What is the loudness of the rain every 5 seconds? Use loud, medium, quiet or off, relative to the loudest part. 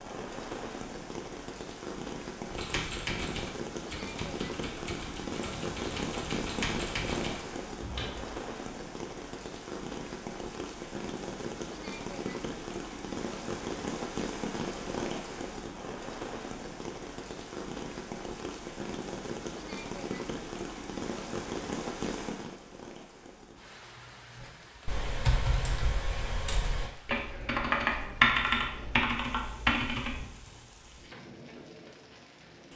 loud, loud, loud, loud, loud, quiet, quiet.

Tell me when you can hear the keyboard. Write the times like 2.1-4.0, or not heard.
2.5-8.3, 24.4-30.2.